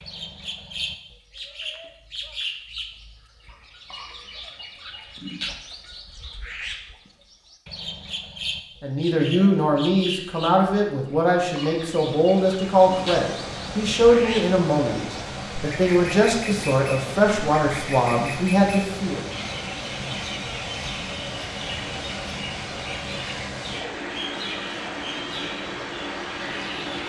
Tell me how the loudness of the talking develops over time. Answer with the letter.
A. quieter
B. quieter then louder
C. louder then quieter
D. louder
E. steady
E.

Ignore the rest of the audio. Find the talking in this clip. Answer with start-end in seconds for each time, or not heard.
8.8-19.2.